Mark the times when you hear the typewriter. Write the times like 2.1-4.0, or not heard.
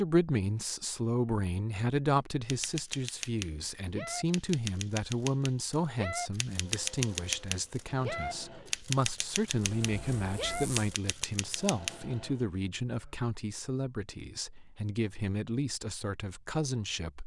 2.5-11.9.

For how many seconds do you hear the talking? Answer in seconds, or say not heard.
17 s.